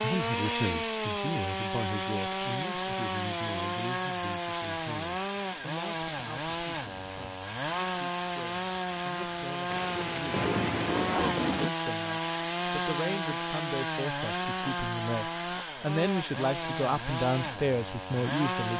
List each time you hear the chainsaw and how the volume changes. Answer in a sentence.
The chainsaw can be heard from 0.0 to 18.7 s, at a steady volume.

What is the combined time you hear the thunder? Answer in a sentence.
The thunder can be heard for 2 seconds in total.